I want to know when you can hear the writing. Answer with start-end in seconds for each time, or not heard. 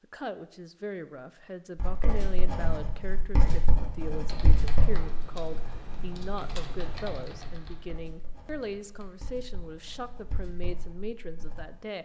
1.8-11.6.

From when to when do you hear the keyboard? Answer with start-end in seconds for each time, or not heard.
4.2-9.2.